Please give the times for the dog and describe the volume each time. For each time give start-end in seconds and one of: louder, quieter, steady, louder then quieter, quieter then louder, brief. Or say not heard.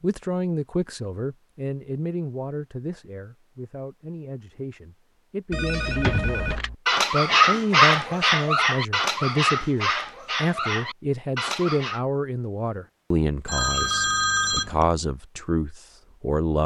5.7-12.0 louder then quieter.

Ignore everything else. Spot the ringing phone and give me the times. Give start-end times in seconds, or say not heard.
5.5-6.8, 13.4-14.8.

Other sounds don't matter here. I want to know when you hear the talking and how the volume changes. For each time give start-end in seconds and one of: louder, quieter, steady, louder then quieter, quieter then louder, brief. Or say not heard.
0.0-6.5 quieter then louder
7.1-16.6 steady.